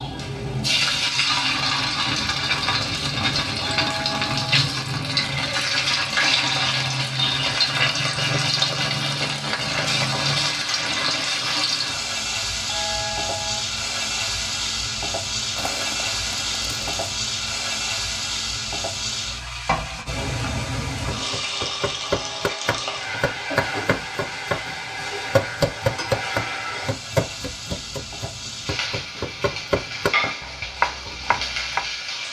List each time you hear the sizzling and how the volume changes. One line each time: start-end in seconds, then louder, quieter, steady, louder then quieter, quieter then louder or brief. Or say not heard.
0.0-32.2 quieter.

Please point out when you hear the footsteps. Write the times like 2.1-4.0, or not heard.
not heard.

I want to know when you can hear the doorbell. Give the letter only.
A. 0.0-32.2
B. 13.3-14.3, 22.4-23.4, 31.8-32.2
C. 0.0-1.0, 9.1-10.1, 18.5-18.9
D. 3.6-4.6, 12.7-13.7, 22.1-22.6
D.